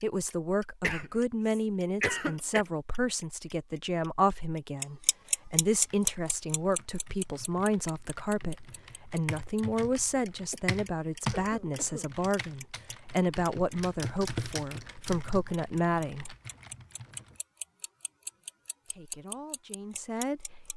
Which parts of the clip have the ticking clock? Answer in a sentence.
The ticking clock can be heard from 0.0 to 20.7 s.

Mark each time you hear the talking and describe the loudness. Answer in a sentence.
The talking can be heard from 0.0 to 16.4 s, at a steady volume; and briefly from 18.9 to 20.7 s.